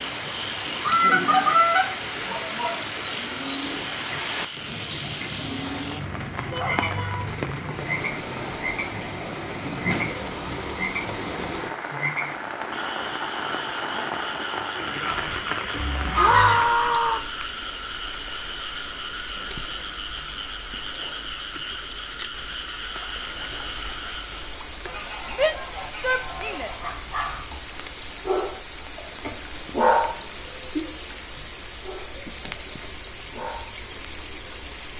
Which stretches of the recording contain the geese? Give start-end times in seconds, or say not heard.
0.8-2.7, 15.1-16.7, 24.9-26.9.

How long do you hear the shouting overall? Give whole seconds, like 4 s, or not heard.
3 s.